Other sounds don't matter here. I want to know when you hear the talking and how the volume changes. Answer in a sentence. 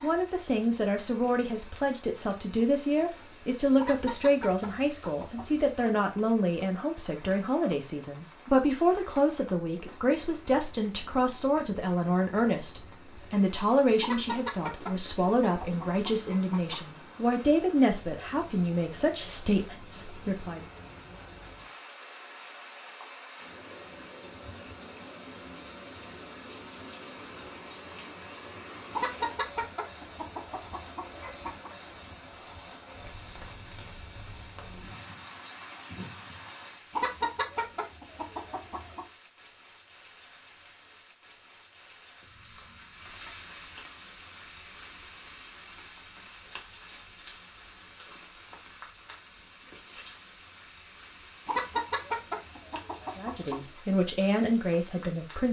You can hear the talking from 0.0 to 20.6 s, at a steady volume; and briefly from 53.1 to 55.4 s.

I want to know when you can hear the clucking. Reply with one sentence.
The clucking can be heard from 3.8 to 5.5 s, from 14.0 to 16.8 s, from 28.9 to 31.7 s, from 36.9 to 39.0 s and from 51.5 to 53.8 s.